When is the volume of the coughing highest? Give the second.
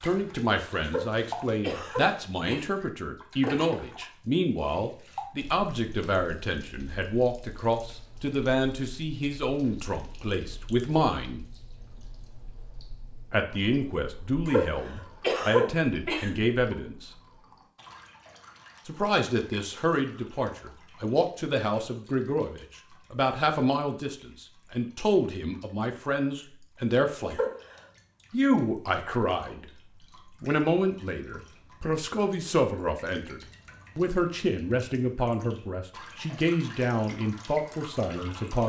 15 s.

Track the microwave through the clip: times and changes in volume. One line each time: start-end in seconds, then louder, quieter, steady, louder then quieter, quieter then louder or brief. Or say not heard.
not heard.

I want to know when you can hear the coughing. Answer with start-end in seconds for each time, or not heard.
0.8-2.7, 14.4-16.3, 27.3-27.8.